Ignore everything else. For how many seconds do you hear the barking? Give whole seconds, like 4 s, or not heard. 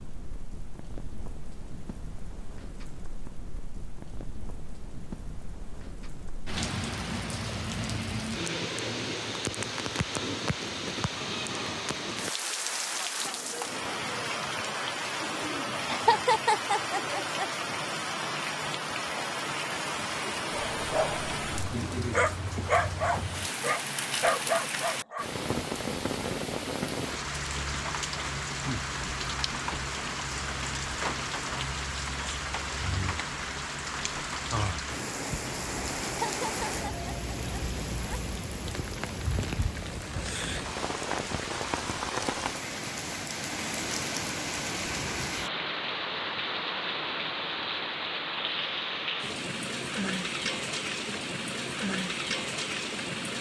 5 s.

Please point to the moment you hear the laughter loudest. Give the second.
16 s.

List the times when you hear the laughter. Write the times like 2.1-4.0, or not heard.
15.9-17.4, 36.2-38.2.